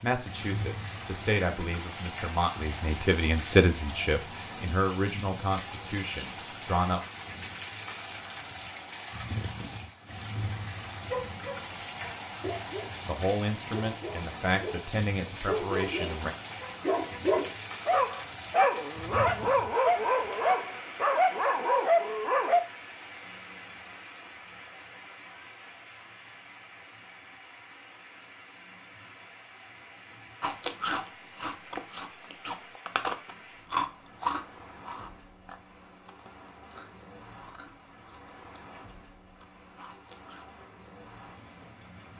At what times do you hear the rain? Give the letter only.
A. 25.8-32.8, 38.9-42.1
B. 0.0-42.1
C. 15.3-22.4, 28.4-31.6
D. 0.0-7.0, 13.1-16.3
B.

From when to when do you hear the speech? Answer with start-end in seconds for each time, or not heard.
0.0-7.0, 13.1-16.3.